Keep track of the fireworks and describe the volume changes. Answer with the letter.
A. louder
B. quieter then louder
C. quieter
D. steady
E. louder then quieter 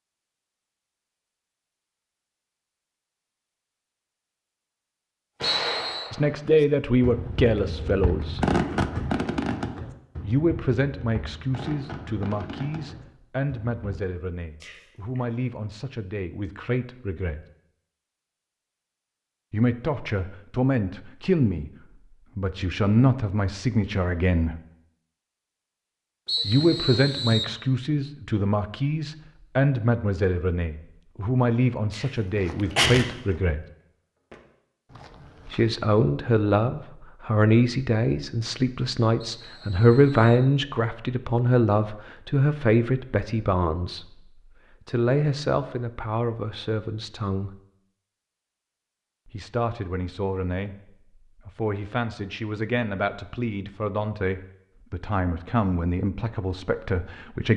E.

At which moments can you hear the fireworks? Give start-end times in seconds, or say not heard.
5.4-14.0.